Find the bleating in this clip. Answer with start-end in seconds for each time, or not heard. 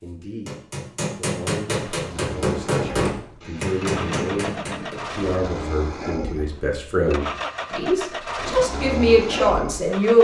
not heard.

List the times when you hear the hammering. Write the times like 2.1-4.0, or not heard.
0.0-5.0.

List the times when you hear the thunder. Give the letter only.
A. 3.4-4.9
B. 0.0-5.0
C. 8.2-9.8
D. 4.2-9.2
A.